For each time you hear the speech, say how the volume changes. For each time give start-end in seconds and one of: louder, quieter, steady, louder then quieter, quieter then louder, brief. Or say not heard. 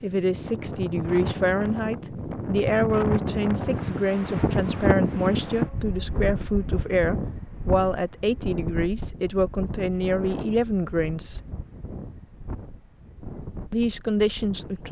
0.0-11.4 steady
13.7-14.8 brief.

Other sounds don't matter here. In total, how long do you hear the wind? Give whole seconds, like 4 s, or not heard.
15 s.